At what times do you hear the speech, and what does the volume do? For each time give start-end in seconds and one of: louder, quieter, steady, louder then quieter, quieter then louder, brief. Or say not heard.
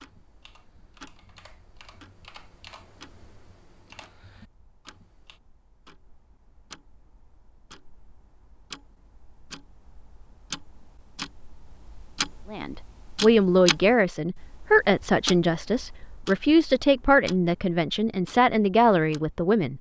12.5-19.7 steady.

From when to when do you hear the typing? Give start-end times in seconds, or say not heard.
0.0-5.4.